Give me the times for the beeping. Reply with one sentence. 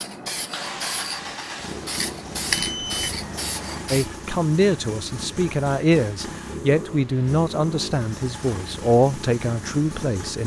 The beeping can be heard from 2.5 to 3.1 s.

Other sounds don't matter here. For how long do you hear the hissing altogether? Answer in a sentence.
The hissing can be heard for 4 seconds in total.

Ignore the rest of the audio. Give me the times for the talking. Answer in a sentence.
You can hear the talking from 3.9 to 10.4 s.